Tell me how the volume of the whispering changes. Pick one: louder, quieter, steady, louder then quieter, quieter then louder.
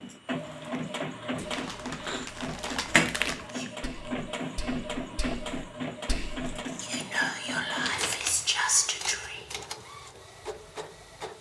louder.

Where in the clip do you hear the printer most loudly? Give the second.
3 s.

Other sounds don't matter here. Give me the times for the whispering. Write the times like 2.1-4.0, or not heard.
3.5-9.4.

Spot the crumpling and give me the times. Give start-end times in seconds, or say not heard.
1.4-3.5, 7.8-8.4.